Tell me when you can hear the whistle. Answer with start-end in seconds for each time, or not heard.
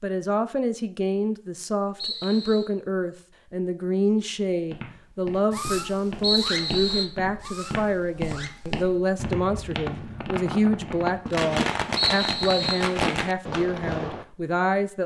1.9-2.7, 6.2-7.0, 11.9-12.9.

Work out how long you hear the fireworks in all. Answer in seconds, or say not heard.
9 s.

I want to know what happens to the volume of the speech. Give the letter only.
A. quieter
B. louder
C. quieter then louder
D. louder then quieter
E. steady
E.